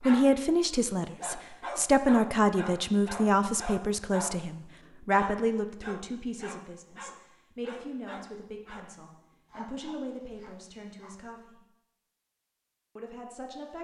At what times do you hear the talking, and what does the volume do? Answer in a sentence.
The talking can be heard from 0.0 to 11.6 s, getting quieter; and briefly from 12.9 to 13.7 s.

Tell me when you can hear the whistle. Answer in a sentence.
The whistle can't be heard in this clip.